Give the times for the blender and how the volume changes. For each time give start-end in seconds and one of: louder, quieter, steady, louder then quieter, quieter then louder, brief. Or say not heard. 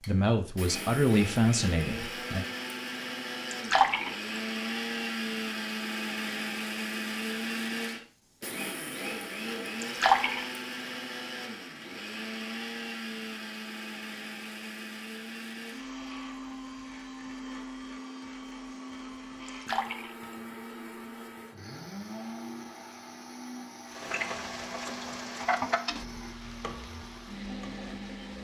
0.0-28.3 quieter.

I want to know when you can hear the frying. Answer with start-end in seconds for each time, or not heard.
23.9-28.3.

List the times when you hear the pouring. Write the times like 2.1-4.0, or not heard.
3.5-4.4, 9.8-10.4, 19.4-20.4.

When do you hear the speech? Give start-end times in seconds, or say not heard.
0.1-2.5.